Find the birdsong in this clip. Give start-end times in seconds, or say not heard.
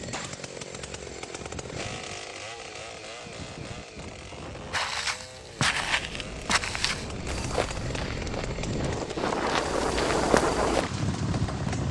not heard.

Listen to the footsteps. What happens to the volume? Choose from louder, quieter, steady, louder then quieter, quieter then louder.
quieter then louder.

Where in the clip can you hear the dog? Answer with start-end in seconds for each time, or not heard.
not heard.